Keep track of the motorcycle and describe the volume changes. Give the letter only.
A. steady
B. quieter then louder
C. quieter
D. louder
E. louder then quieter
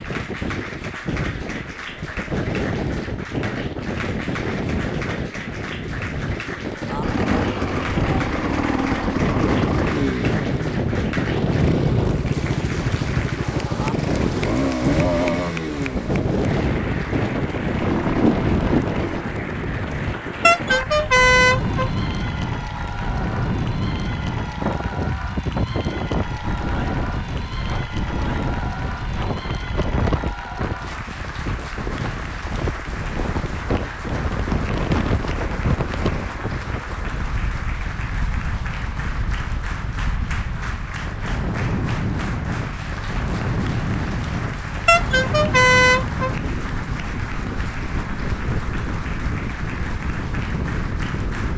A.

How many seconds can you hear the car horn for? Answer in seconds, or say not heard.
3 s.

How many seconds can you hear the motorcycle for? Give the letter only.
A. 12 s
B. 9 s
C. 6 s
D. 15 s
A.